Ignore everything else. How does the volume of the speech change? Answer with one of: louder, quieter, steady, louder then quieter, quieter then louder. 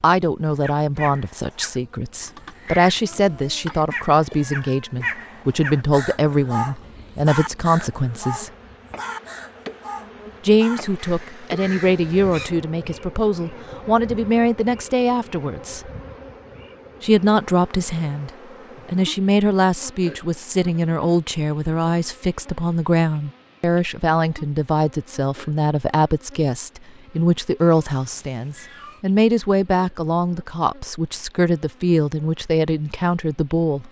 steady.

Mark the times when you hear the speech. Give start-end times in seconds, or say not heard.
0.0-8.5, 10.4-15.9, 17.0-33.8.